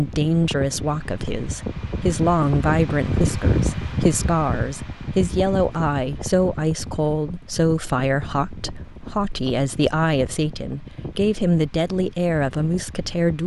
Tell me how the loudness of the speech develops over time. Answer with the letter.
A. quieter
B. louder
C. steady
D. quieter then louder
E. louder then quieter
C.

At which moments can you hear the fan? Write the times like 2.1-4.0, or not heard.
0.0-13.4.